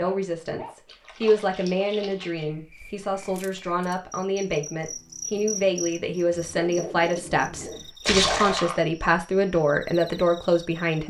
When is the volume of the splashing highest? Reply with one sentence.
The volume of the splashing peaks at 8 seconds.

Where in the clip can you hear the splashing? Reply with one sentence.
You can hear the splashing from 0.8 to 2.5 s and from 8.0 to 8.8 s.